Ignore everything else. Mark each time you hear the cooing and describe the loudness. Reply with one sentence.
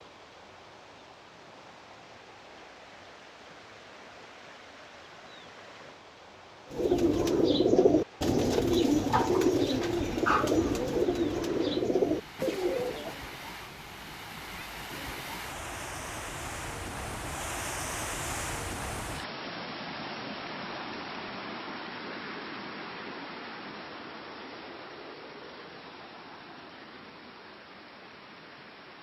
The cooing can be heard from 6.7 to 13.2 s, at a steady volume.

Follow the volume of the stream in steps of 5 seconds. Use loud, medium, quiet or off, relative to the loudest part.
quiet, quiet, medium, loud, loud, medium.